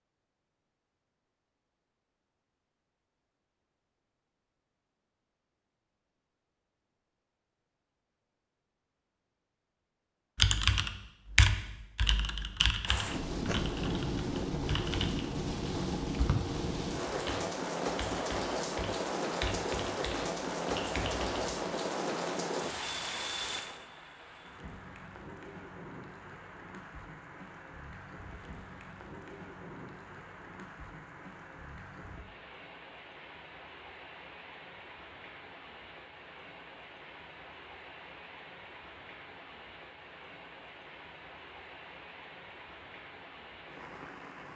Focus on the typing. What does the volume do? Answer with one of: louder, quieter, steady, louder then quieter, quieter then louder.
quieter.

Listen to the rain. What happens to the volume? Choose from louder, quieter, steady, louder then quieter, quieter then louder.
quieter.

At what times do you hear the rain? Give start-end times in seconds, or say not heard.
12.8-44.5.